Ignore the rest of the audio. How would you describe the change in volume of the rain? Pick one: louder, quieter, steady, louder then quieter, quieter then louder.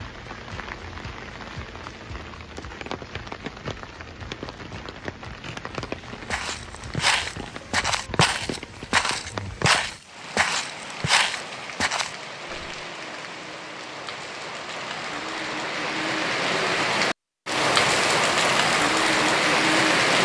louder.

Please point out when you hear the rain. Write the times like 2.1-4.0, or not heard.
0.0-20.2.